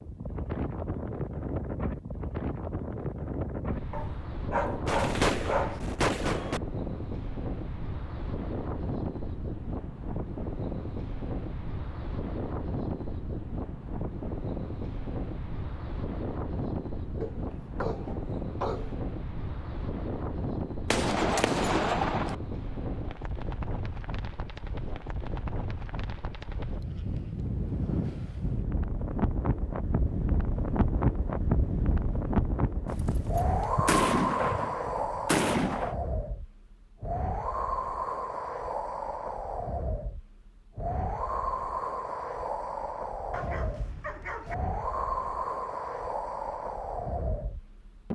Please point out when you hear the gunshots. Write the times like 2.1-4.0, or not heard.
4.8-6.6, 20.9-22.4, 32.9-36.0.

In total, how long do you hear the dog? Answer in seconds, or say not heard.
5 s.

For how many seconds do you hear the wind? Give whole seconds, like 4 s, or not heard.
48 s.